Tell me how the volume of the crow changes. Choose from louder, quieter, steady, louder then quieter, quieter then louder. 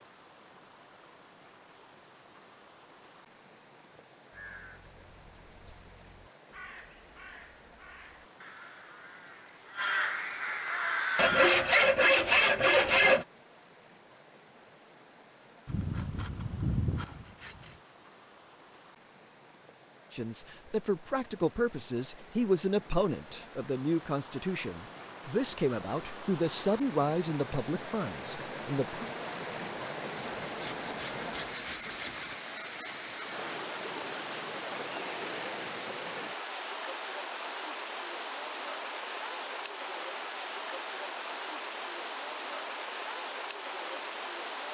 louder.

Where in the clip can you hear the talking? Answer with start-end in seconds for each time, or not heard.
20.1-29.1.